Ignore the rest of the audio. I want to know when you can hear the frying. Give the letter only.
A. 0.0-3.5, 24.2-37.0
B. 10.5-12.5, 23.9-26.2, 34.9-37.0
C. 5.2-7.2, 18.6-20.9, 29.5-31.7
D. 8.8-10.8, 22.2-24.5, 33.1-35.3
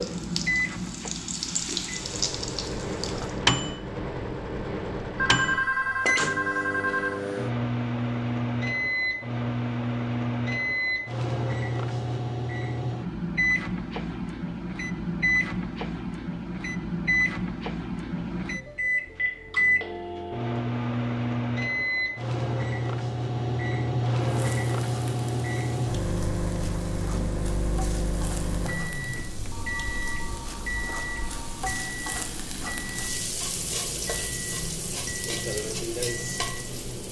A.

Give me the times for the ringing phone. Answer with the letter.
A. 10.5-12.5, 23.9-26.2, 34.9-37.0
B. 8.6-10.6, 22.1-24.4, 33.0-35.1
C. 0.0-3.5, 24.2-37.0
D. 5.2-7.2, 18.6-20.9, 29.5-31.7
D.